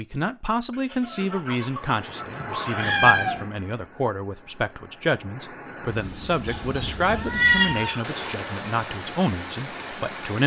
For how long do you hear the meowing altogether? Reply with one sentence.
You can hear the meowing for 2 seconds altogether.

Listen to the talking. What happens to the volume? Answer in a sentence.
The volume of the talking stays about the same.